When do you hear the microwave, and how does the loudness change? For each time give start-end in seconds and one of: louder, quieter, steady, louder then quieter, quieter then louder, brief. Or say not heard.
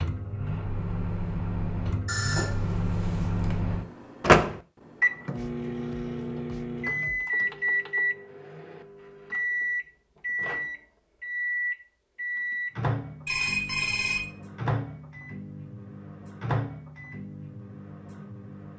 0.0-18.7 louder then quieter.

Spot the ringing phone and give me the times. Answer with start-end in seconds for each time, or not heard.
2.0-3.5, 13.2-14.2.